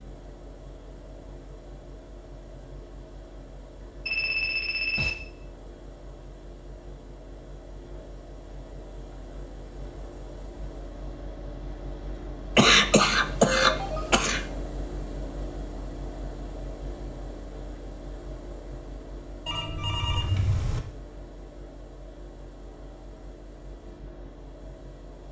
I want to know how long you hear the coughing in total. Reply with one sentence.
You can hear the coughing for 2 seconds altogether.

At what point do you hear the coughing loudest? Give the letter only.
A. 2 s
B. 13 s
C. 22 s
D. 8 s
B.